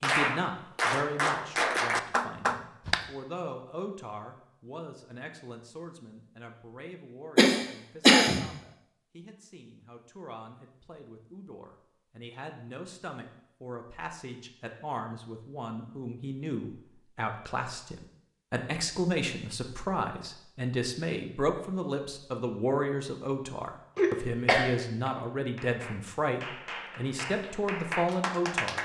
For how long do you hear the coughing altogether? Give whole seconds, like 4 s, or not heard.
2 s.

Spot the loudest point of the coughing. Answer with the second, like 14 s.
8 s.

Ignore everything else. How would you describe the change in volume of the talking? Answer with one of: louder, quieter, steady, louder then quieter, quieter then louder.
quieter then louder.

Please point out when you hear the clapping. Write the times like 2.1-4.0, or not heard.
0.0-3.1, 25.5-28.8.